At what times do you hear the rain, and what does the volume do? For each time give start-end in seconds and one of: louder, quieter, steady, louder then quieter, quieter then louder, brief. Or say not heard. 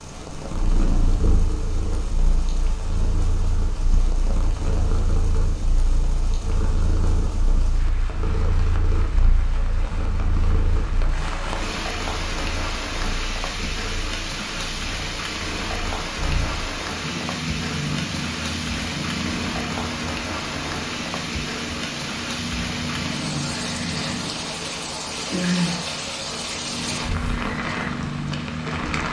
0.0-29.0 louder.